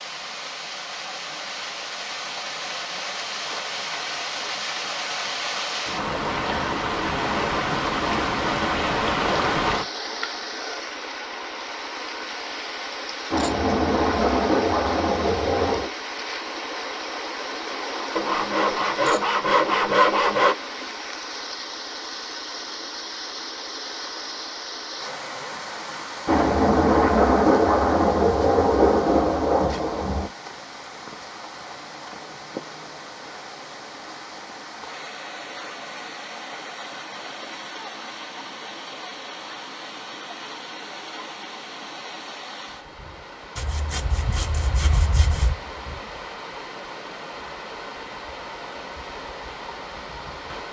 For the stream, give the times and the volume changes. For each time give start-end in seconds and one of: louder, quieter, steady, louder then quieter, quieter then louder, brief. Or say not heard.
0.0-50.6 quieter.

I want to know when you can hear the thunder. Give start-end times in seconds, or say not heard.
13.3-15.9, 26.2-30.3.